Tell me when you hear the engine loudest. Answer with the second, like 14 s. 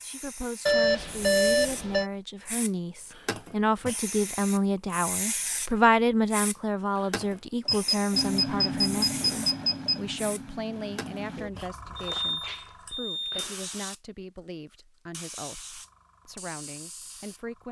9 s.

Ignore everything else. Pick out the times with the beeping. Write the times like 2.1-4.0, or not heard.
0.7-2.1, 7.7-10.0, 11.9-13.7.